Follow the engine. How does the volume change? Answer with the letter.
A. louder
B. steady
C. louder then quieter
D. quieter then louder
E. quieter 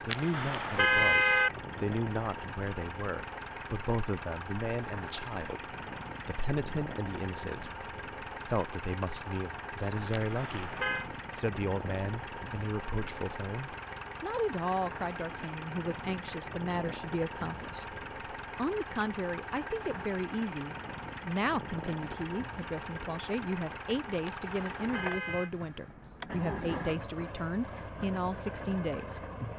B.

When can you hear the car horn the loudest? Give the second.
1 s.